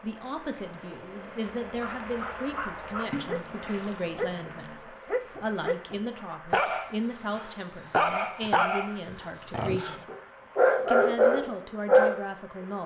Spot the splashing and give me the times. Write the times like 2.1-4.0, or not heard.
3.0-4.8.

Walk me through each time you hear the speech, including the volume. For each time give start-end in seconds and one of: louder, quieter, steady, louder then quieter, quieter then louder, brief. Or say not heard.
0.0-10.1 steady
10.8-12.8 brief.